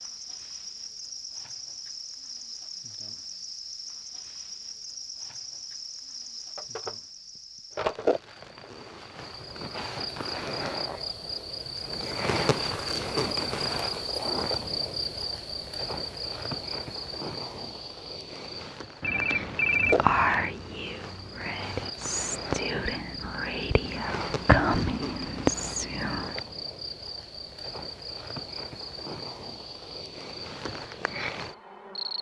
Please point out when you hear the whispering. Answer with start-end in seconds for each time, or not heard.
19.9-26.4.